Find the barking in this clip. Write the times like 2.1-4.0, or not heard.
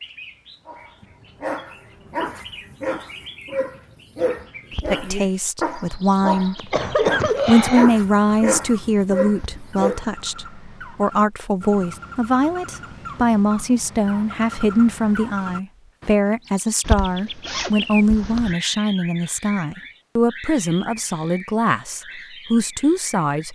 0.7-10.1.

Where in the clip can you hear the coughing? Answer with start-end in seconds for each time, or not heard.
6.5-8.0.